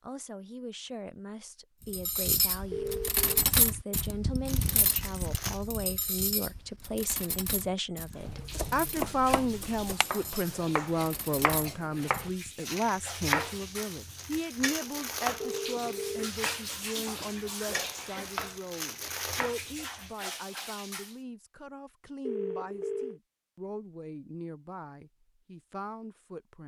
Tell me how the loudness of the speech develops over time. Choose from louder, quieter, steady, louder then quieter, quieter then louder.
louder then quieter.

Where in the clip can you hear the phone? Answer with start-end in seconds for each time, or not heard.
2.7-3.5, 15.4-16.3, 22.2-23.2.